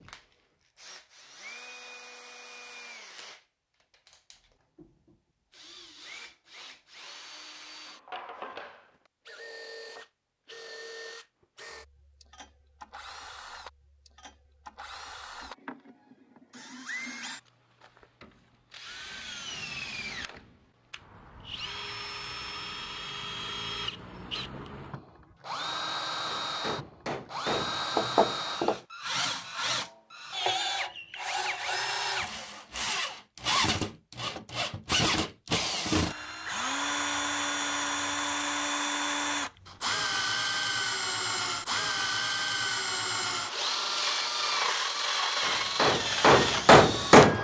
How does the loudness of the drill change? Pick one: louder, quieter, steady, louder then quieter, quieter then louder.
louder.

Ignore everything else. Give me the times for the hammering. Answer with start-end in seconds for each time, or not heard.
26.2-28.8, 45.4-47.3.